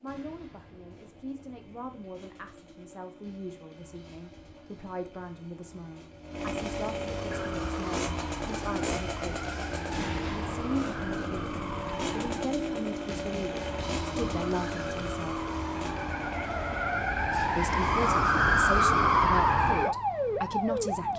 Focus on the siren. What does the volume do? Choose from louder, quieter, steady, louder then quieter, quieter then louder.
louder.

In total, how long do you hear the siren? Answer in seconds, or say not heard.
14 s.